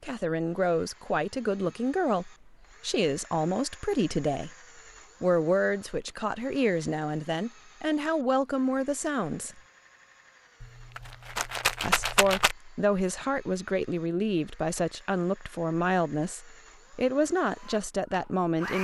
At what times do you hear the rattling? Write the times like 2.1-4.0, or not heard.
10.6-12.6.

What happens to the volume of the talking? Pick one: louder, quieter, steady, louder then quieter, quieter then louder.
steady.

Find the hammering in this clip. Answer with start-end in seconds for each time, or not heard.
not heard.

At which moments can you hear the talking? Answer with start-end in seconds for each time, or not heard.
0.0-4.5, 5.2-9.6, 11.8-18.8.